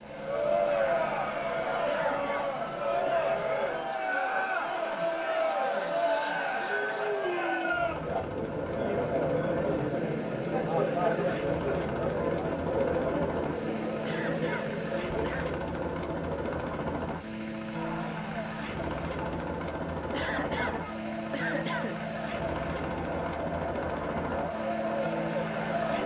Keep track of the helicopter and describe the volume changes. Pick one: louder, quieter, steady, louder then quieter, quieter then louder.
louder.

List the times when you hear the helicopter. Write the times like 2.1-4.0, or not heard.
0.0-26.0.